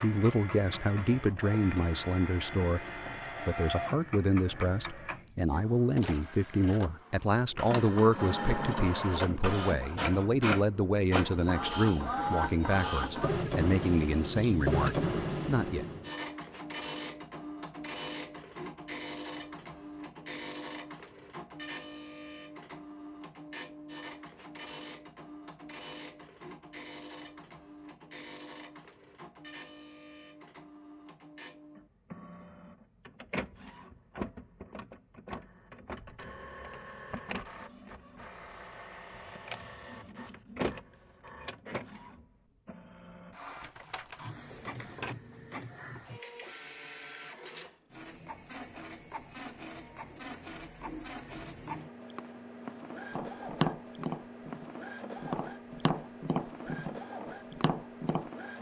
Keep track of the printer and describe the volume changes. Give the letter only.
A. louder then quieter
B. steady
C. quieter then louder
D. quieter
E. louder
D.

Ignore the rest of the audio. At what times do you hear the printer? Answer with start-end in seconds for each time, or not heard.
0.0-58.5.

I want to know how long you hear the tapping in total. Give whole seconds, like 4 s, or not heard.
5 s.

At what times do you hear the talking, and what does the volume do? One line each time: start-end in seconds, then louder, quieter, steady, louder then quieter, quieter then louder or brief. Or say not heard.
0.0-15.8 steady.